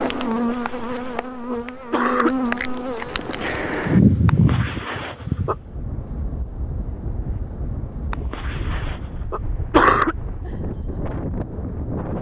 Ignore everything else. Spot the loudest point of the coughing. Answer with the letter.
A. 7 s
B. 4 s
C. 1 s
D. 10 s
D.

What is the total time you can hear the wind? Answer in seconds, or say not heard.
7 s.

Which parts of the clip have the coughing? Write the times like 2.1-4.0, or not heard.
0.3-2.3, 4.2-5.5, 8.1-10.2.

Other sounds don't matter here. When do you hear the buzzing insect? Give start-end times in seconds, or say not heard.
0.0-5.5.